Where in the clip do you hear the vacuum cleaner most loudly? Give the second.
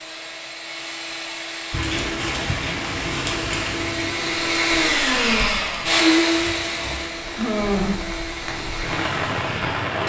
6 s.